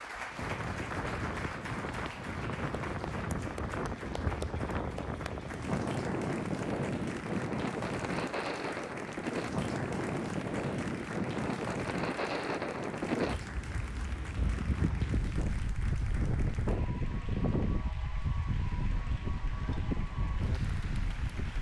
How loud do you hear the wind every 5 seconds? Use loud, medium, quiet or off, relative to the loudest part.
loud, loud, loud, loud, medium.